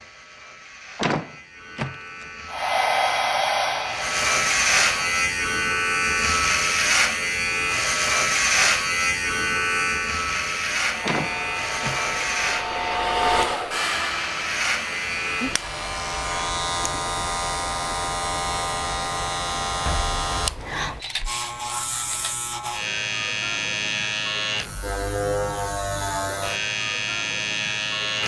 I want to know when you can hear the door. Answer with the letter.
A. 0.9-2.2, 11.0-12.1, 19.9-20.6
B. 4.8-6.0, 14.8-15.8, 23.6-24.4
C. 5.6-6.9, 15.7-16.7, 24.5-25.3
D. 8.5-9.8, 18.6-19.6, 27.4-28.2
A.